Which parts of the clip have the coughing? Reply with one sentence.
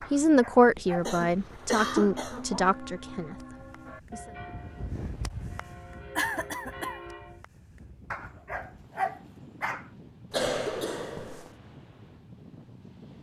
The coughing can be heard from 0.9 to 2.7 s, from 6.2 to 7.0 s and from 10.3 to 11.5 s.